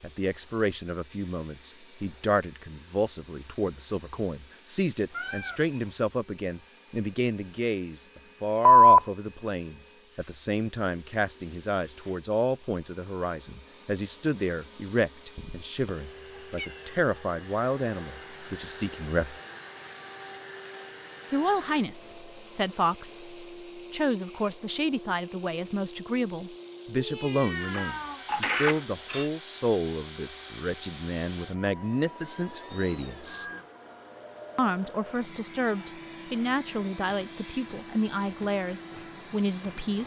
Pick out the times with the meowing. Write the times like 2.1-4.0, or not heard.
5.1-5.8, 15.3-16.9, 26.9-28.2.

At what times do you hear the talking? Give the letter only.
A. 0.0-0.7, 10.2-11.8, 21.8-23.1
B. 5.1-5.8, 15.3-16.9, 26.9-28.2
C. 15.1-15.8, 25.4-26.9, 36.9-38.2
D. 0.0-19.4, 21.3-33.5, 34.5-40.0
D.